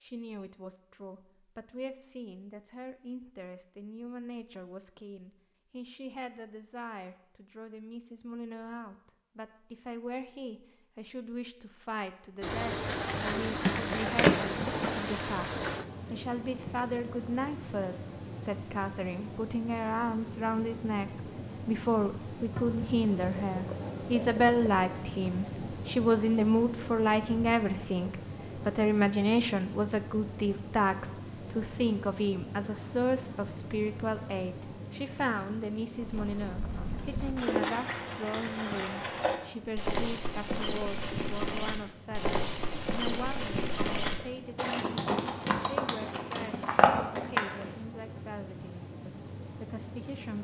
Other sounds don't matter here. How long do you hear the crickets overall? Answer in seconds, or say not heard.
38 s.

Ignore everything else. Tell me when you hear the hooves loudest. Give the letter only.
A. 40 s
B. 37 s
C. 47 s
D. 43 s
C.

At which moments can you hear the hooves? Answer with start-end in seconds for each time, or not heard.
36.0-47.8.